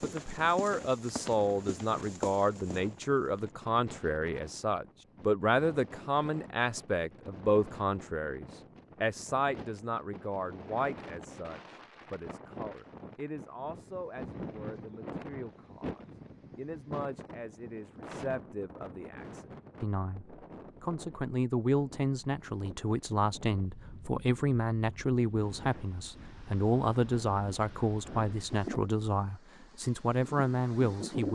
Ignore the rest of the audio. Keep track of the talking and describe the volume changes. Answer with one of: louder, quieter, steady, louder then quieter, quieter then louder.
quieter then louder.